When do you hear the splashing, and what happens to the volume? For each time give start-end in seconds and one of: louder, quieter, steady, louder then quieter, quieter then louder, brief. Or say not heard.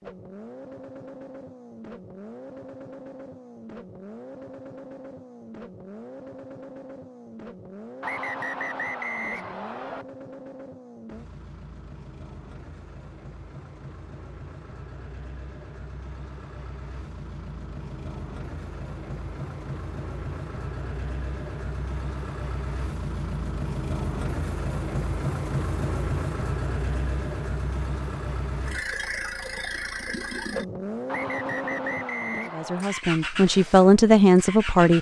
not heard.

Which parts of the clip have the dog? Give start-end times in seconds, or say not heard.
not heard.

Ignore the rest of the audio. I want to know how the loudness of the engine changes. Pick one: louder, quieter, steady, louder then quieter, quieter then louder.
louder.